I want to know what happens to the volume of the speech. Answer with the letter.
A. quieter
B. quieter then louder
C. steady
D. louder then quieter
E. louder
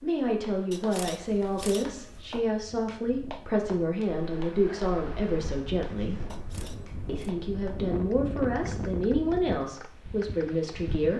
C.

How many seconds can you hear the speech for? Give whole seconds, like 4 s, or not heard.
10 s.